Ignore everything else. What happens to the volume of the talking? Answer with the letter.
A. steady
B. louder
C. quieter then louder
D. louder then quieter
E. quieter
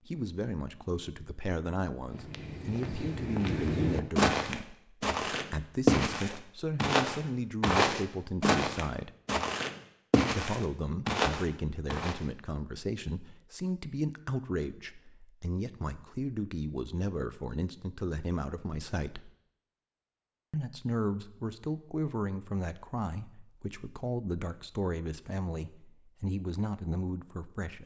A.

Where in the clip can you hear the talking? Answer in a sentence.
You can hear the talking from 0.1 to 9.1 s, from 10.3 to 19.3 s and from 20.5 to 27.8 s.